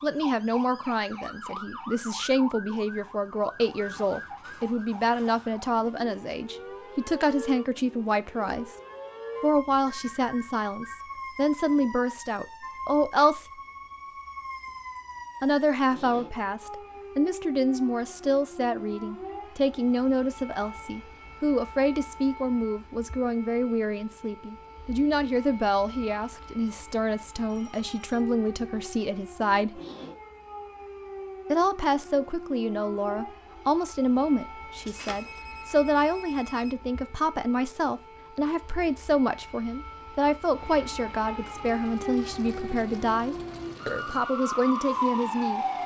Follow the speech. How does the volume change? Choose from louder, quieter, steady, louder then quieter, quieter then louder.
steady.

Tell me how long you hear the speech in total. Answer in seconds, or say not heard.
41 s.